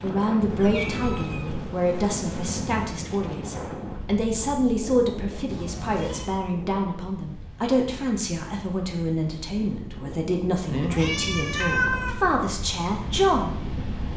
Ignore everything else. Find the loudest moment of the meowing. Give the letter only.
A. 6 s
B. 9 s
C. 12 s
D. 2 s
C.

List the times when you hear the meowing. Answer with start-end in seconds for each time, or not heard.
0.5-2.5, 5.5-6.3, 10.7-12.2.